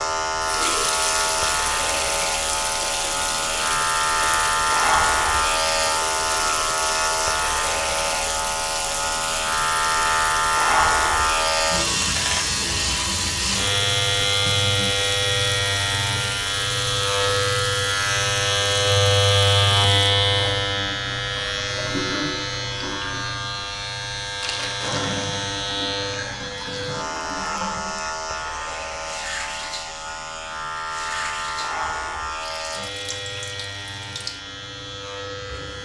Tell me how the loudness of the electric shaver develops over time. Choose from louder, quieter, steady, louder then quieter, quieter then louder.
quieter.